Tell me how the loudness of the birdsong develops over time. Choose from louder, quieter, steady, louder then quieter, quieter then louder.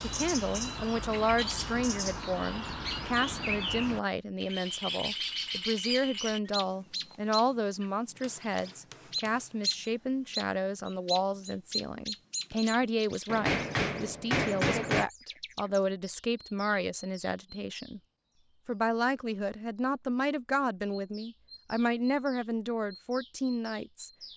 quieter.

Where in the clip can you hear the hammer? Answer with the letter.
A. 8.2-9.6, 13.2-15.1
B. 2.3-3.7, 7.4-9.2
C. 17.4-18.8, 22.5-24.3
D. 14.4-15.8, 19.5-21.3
A.